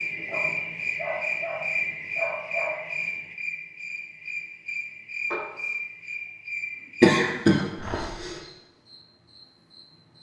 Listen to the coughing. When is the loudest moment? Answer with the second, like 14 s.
7 s.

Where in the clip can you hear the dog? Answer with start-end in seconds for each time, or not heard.
0.2-2.9, 7.8-8.2.